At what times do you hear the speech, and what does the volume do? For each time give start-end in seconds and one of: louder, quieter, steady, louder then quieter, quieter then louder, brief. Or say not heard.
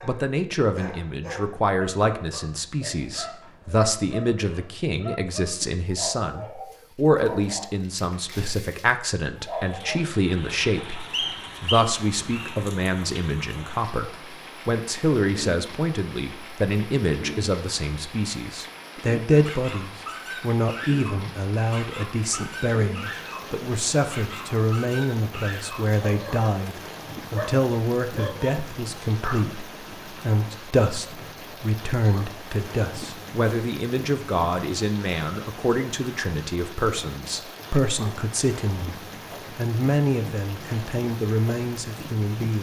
0.0-42.5 steady.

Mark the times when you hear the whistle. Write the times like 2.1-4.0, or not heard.
11.1-12.6.